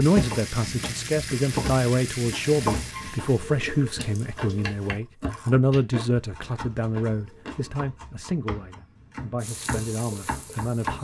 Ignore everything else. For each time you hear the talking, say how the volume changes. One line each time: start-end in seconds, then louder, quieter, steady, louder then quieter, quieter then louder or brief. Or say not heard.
0.0-10.9 quieter.